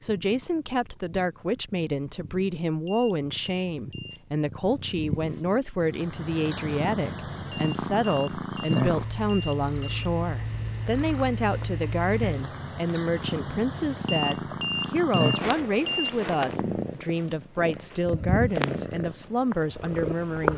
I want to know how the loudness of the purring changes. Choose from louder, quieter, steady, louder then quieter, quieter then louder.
louder.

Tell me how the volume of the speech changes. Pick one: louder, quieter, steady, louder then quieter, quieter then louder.
steady.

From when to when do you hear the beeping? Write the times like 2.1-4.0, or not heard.
2.9-4.2, 7.5-10.1, 14.1-16.1.